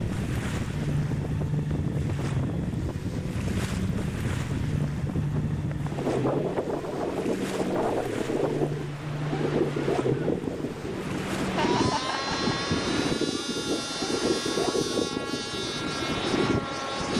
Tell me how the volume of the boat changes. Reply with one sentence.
The volume of the boat stays about the same.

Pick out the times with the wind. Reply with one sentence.
You can hear the wind from 0.0 to 17.1 s.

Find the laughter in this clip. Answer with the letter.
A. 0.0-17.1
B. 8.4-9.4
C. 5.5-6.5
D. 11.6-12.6
D.